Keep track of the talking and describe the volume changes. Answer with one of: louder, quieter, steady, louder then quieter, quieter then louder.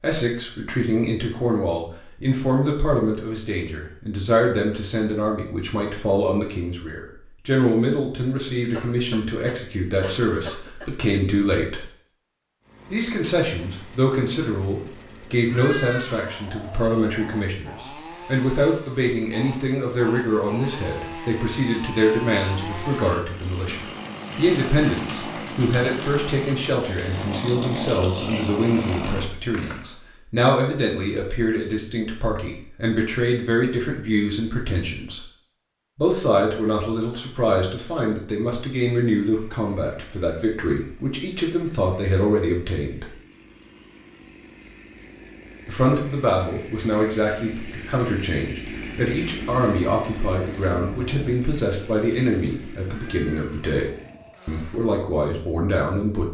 steady.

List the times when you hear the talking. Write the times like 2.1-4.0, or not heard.
0.0-11.8, 12.9-35.2, 36.0-43.1, 45.6-56.3.